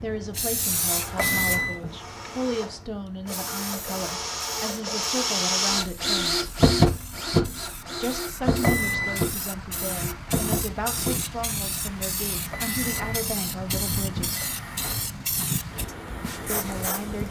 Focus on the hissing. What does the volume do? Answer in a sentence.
The loudness of the hissing goes down, then up.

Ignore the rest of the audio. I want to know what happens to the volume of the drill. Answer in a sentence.
The volume of the drill goes up, then down.